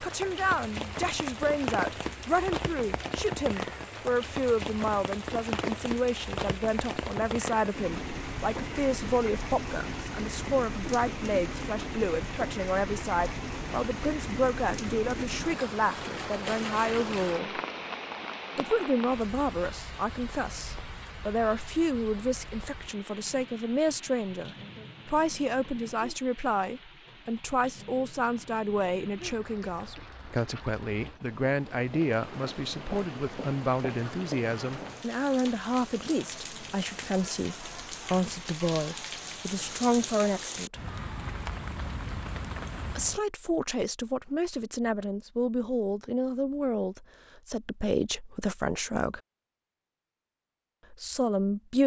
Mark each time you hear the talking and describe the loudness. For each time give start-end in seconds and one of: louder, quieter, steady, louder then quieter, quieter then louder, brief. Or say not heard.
0.0-17.6 steady
18.6-40.8 steady
42.9-49.2 steady
50.9-51.8 brief.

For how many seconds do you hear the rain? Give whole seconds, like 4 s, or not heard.
43 s.